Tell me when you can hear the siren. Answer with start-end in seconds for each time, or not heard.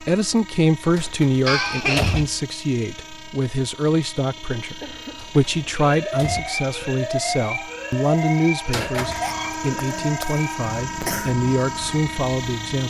5.5-12.8.